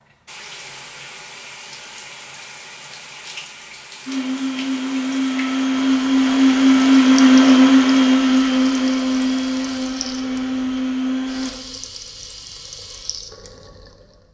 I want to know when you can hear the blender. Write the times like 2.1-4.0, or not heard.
4.0-11.5.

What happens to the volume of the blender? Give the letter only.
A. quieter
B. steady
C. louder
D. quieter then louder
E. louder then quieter
E.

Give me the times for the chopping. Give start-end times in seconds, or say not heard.
not heard.